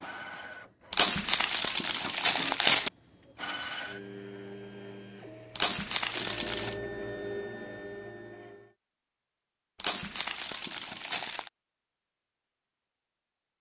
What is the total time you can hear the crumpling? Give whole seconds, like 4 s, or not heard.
5 s.